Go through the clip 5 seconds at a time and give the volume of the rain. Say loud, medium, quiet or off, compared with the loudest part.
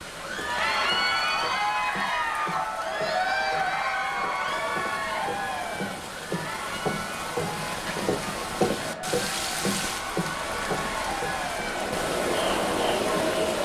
medium, loud, loud.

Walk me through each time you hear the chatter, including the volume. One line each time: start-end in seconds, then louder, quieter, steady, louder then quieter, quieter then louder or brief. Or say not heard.
0.1-13.6 quieter then louder.